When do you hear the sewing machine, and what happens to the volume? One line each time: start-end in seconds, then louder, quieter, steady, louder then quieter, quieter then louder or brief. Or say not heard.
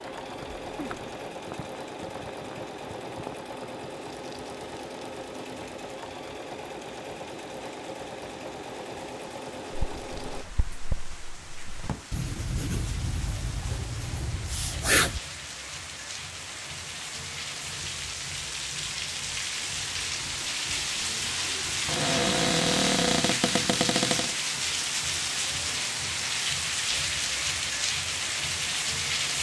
0.0-10.4 steady.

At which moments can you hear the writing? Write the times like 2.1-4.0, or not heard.
9.7-15.2.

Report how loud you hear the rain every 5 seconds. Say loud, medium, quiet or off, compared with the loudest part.
quiet, quiet, quiet, medium, loud, loud.